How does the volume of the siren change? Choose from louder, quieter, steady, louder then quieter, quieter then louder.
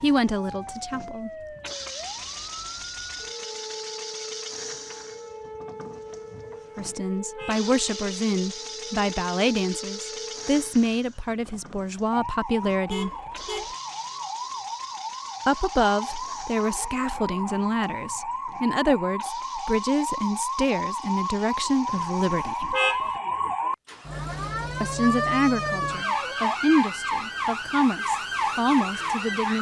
louder.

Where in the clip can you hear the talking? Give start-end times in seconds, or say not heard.
0.0-1.3, 6.8-13.1, 15.4-22.8, 24.8-29.5.